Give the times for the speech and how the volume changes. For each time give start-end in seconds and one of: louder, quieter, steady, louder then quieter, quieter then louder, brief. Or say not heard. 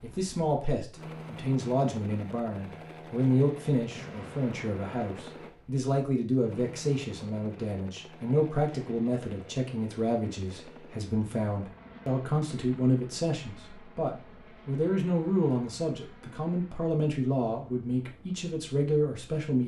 0.0-19.6 steady.